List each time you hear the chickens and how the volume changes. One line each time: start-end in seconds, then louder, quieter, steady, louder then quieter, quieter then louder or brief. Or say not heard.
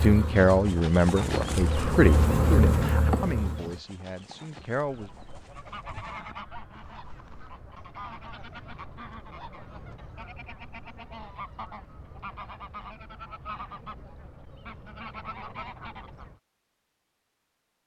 4.8-16.4 steady.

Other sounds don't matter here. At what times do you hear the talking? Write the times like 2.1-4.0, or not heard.
0.0-5.1.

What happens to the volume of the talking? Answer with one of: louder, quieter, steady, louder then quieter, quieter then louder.
quieter.